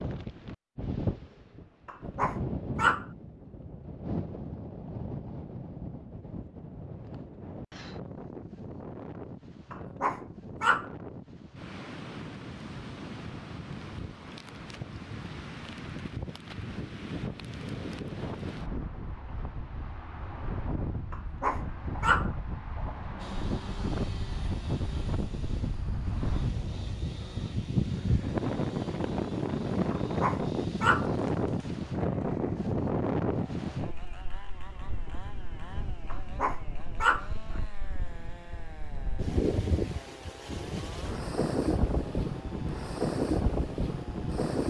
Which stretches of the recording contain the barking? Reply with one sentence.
You can hear the barking from 1.9 to 3.0 s, from 9.7 to 10.9 s, from 21.1 to 22.3 s, from 29.9 to 31.1 s and from 36.1 to 37.2 s.